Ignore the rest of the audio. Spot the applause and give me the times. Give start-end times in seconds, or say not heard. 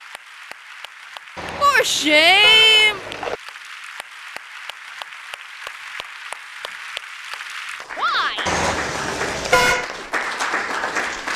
0.0-11.3.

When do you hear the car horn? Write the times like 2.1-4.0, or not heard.
1.4-3.4, 8.4-9.9.